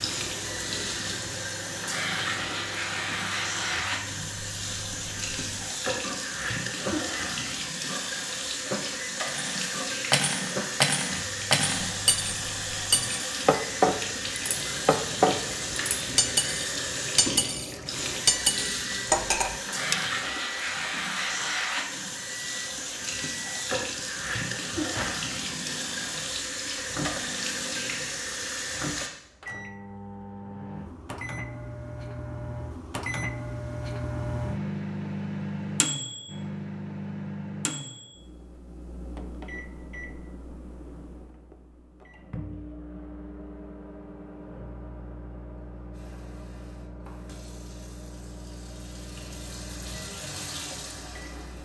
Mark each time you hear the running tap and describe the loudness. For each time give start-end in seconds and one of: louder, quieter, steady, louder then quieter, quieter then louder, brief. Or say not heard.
0.0-29.1 steady
45.9-51.6 louder.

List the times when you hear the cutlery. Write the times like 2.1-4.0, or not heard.
9.2-20.1.